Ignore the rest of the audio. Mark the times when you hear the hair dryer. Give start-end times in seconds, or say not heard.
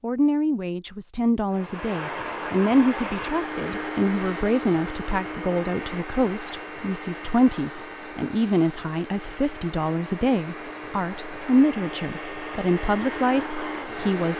1.5-14.3.